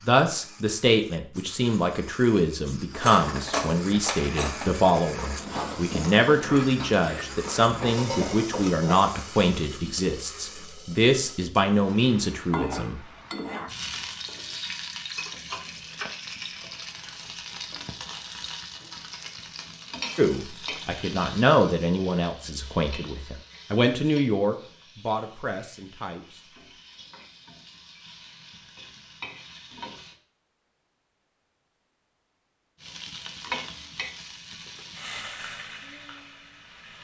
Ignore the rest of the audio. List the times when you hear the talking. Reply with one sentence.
The talking can be heard from 0.1 to 13.0 s and from 20.1 to 26.4 s.